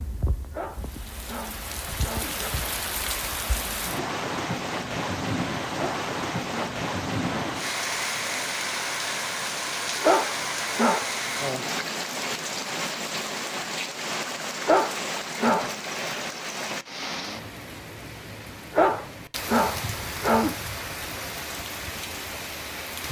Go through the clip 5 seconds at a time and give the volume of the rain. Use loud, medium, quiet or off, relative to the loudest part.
loud, loud, loud, medium, medium.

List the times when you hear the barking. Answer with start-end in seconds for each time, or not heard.
0.5-2.5, 5.8-7.5, 10.0-11.1, 14.7-16.2, 18.7-20.6.